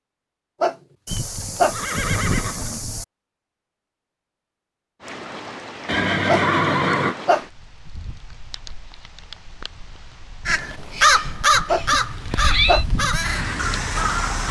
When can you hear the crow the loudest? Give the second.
11 s.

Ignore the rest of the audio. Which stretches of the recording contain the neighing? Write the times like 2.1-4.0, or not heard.
1.1-3.0, 5.8-7.2, 11.7-12.8.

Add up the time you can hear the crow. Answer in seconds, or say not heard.
4 s.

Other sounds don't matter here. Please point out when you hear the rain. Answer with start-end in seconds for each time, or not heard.
5.0-14.4.